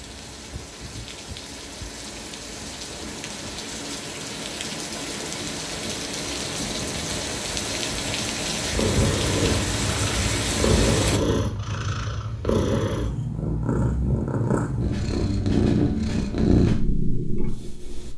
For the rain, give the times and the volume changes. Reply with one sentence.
You can hear the rain from 0.0 to 11.2 s, getting louder.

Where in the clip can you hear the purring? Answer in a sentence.
The purring can be heard from 8.6 to 18.1 s.